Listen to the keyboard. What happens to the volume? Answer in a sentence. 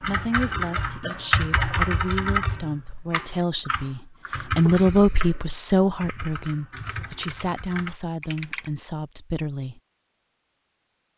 The volume of the keyboard goes down.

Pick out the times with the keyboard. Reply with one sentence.
The keyboard can be heard from 0.0 to 8.7 s.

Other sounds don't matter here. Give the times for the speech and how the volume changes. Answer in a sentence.
The speech can be heard from 0.0 to 9.8 s, getting louder then quieter.